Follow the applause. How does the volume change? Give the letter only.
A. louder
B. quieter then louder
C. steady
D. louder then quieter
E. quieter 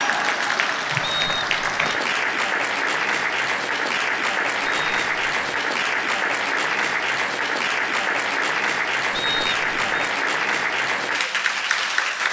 C.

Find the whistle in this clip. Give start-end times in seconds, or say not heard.
1.0-1.9, 4.7-5.6, 9.1-10.1.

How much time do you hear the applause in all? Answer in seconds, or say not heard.
12 s.